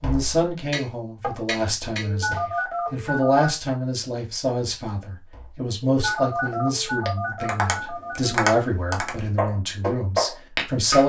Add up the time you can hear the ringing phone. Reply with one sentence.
The ringing phone can be heard for 4 seconds in total.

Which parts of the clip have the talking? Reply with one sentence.
The talking can be heard from 0.0 to 11.0 s.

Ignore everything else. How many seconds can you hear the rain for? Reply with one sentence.
The rain can't be heard in this clip.